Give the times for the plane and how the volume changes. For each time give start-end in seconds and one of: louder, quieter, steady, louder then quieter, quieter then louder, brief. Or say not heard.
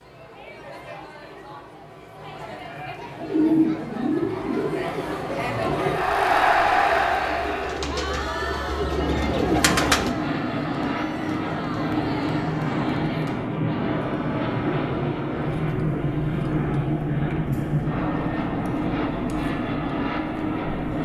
8.8-21.0 steady.